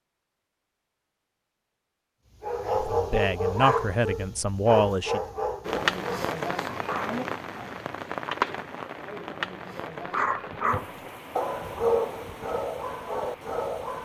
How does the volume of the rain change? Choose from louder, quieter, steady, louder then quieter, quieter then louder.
quieter.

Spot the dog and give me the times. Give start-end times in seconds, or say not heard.
2.4-7.2, 10.1-14.0.